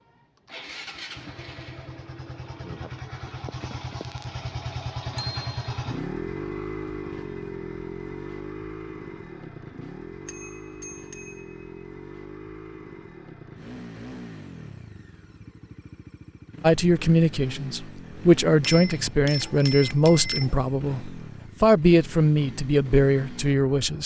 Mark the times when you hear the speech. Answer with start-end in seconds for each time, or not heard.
16.6-24.0.